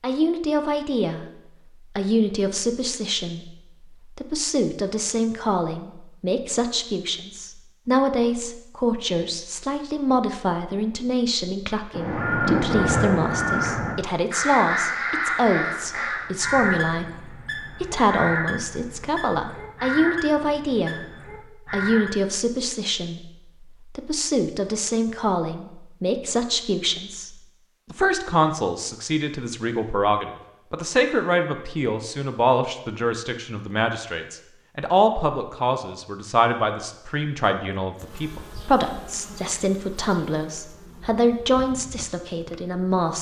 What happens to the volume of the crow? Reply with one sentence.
The volume of the crow goes down.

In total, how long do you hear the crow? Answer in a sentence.
You can hear the crow for 10 seconds altogether.